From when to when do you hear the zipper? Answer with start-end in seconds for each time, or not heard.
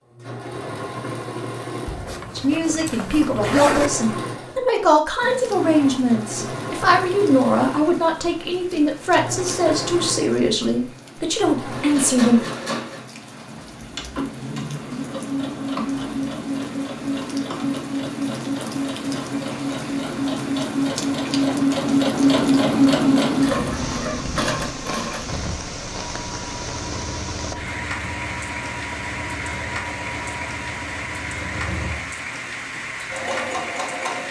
1.9-3.9.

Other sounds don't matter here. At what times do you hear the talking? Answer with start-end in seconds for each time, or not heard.
2.4-12.4.